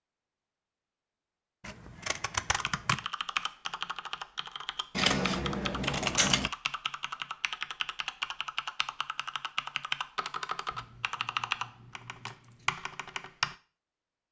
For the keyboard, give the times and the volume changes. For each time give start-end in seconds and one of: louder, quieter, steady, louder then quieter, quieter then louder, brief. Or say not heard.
2.5-13.6 steady.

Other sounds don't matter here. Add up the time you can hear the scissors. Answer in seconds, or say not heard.
5 s.